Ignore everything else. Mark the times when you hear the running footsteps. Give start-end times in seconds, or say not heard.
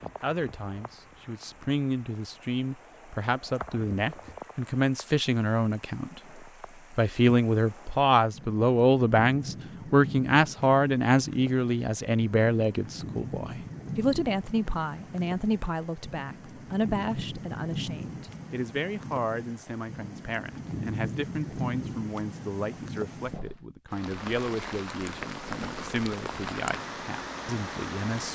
not heard.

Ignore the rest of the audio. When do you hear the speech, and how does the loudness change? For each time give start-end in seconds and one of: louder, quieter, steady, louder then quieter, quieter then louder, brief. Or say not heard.
0.0-28.3 louder then quieter.